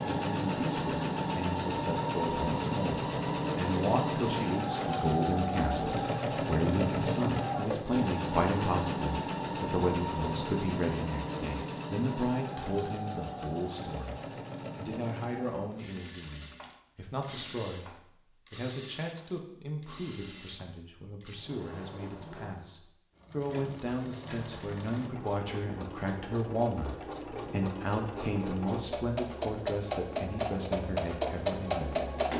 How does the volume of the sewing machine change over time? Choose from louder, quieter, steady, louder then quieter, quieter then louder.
quieter then louder.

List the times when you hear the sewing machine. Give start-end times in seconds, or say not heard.
0.0-32.3.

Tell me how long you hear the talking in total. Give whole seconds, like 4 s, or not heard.
32 s.